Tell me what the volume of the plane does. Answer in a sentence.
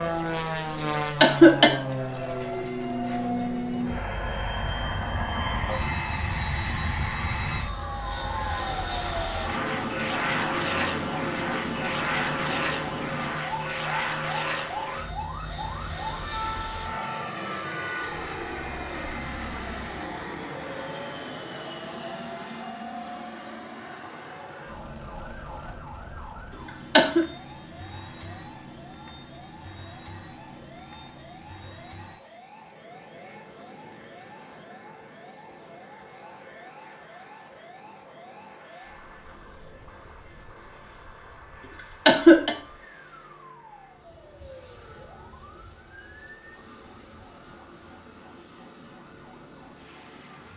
The loudness of the plane goes down.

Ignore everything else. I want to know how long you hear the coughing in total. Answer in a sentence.
The coughing can be heard for 3 seconds in total.